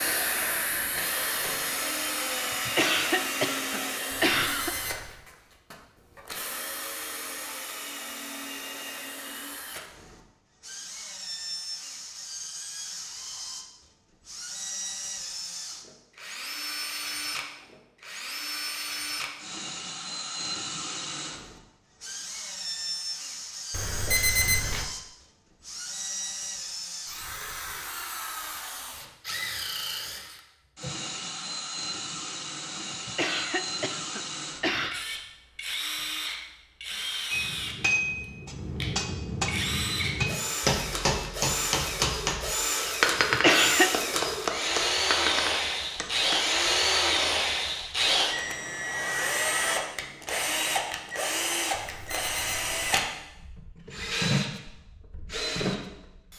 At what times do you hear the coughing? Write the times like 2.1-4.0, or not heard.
2.6-4.8, 33.0-35.0, 43.3-44.0.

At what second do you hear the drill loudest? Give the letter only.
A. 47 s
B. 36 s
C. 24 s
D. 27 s
A.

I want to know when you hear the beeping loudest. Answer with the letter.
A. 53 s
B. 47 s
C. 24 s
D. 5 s
C.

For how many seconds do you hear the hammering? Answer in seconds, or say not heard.
9 s.